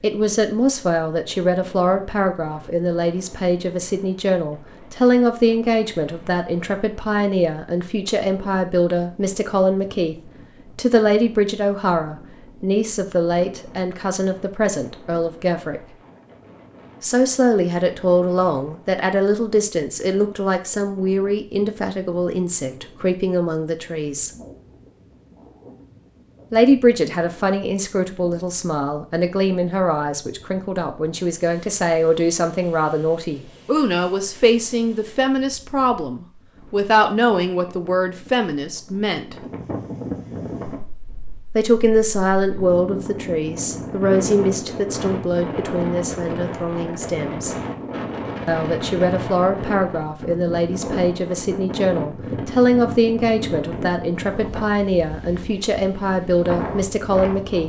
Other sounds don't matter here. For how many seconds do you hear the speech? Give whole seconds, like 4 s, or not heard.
51 s.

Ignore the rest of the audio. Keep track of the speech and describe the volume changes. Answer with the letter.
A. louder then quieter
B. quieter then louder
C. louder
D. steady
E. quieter
D.